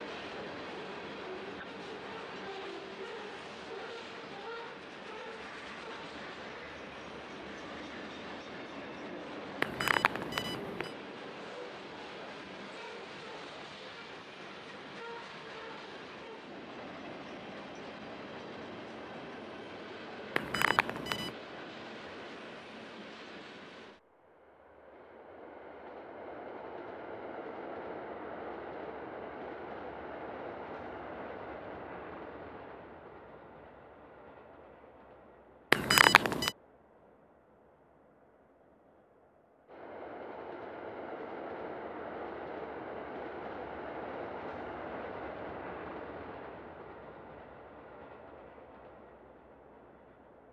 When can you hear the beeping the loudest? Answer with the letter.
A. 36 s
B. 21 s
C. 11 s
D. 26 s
A.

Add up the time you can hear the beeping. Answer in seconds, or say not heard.
3 s.